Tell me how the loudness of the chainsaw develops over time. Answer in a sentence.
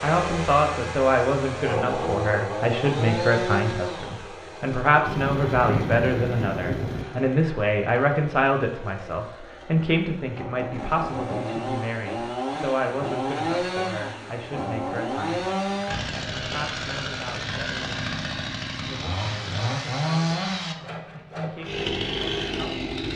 The volume of the chainsaw goes down, then up.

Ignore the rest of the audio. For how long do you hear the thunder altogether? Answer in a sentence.
The thunder can be heard for 2 seconds in total.